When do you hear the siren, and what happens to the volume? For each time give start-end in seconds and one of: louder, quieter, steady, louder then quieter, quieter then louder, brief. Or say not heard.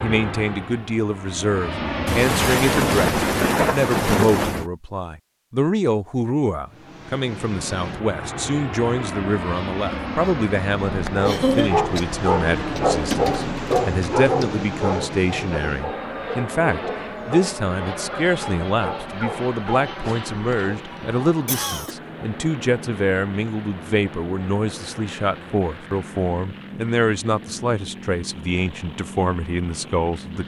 not heard.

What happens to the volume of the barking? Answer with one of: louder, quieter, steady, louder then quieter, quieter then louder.
quieter.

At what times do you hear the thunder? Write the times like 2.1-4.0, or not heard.
2.0-4.7.